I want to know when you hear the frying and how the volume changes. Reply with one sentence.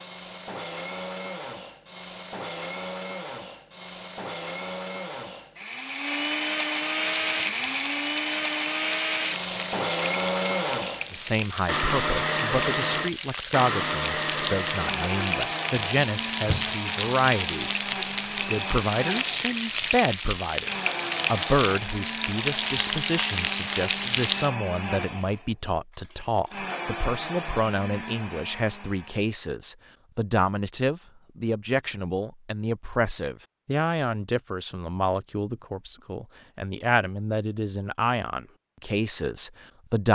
The frying can be heard from 7.0 to 24.5 s, getting louder.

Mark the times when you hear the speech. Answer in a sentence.
The speech can be heard from 11.1 to 17.9 s and from 18.4 to 40.0 s.